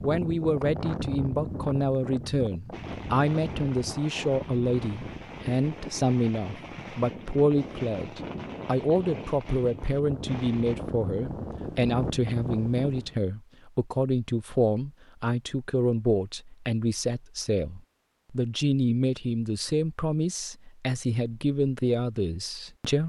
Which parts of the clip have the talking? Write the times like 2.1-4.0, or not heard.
0.0-23.0.